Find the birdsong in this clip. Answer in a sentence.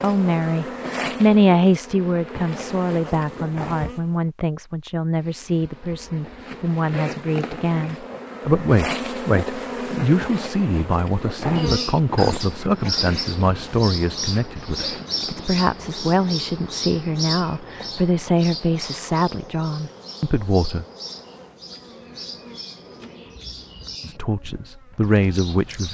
The birdsong can be heard from 11.6 to 25.8 s.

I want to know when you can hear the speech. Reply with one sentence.
The speech can be heard from 0.0 to 20.9 s and from 24.1 to 25.8 s.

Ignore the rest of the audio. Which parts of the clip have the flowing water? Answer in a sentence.
The flowing water can't be heard in this clip.